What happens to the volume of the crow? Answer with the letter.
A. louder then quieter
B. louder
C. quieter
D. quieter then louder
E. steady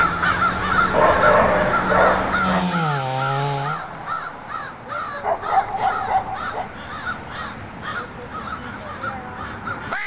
C.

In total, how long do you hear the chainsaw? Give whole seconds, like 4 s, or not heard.
4 s.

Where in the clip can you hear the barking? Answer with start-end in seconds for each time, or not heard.
0.9-2.6, 5.2-6.7.